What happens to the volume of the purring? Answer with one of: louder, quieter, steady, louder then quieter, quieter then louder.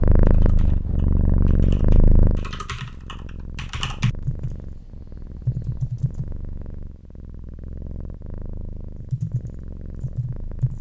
quieter.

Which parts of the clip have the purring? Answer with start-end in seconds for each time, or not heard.
0.0-10.7.